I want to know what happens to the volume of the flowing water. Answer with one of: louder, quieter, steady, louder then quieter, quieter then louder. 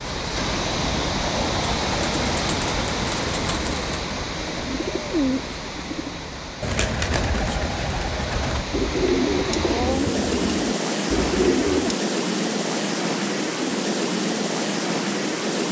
quieter then louder.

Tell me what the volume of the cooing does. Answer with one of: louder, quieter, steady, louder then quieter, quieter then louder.
louder.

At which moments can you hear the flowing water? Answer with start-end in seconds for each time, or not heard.
0.0-15.6.